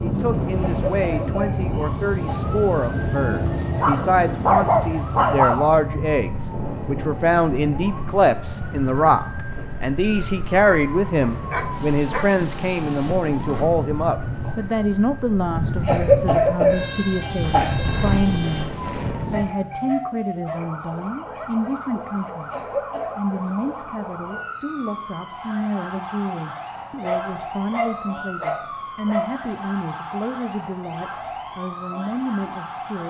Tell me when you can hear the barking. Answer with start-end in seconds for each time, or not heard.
3.8-5.5, 10.7-12.3, 19.3-21.5, 27.0-29.4.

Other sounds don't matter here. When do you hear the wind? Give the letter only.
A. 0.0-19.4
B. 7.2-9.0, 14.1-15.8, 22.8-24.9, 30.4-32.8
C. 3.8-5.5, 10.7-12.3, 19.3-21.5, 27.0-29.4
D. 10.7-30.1
A.